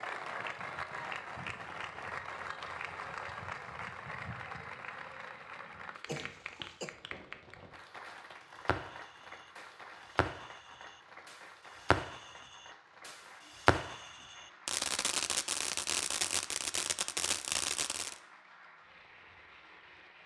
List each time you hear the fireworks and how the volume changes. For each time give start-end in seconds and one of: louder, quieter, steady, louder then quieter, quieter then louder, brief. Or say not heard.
6.9-18.1 louder.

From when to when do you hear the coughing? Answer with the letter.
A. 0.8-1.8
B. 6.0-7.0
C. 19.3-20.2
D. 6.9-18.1
B.